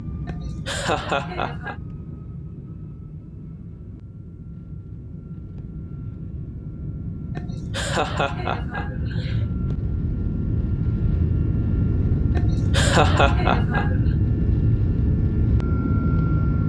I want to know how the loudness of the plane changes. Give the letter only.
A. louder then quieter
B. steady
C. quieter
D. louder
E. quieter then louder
D.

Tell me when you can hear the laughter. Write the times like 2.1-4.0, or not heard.
0.2-1.8, 7.3-9.4, 12.3-14.0.